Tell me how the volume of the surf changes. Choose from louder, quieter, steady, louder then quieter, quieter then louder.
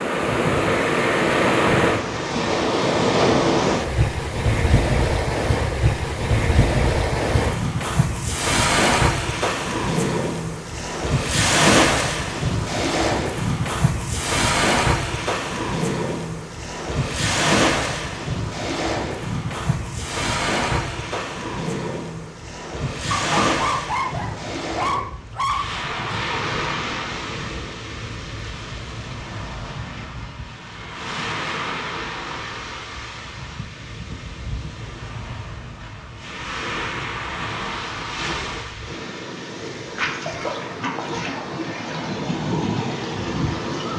quieter.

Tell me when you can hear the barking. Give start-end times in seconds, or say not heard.
23.1-25.8.